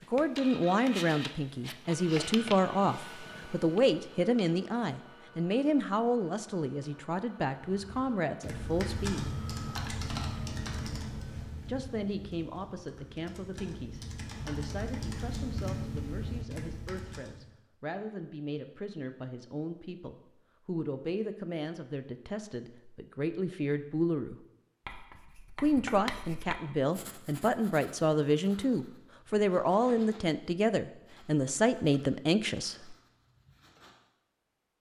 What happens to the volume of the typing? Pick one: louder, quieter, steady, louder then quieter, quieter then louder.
quieter then louder.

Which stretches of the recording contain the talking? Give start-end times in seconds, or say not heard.
0.1-9.3, 11.7-24.4, 25.6-33.0.